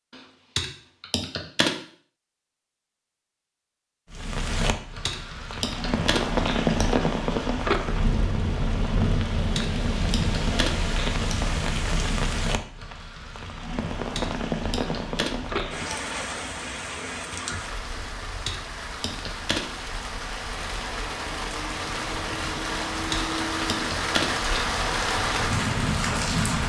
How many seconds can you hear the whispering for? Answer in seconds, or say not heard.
not heard.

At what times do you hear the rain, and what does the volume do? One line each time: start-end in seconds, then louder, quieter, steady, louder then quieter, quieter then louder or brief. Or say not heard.
4.1-26.6 quieter then louder.